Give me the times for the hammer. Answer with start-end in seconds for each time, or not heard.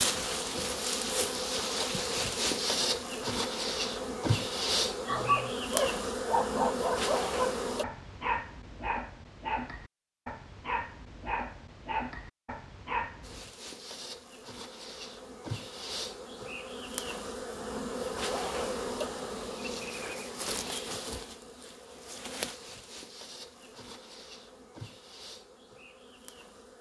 not heard.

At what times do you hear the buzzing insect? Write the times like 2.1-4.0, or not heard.
0.0-7.8, 13.2-26.7.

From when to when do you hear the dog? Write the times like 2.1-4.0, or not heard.
5.0-13.4.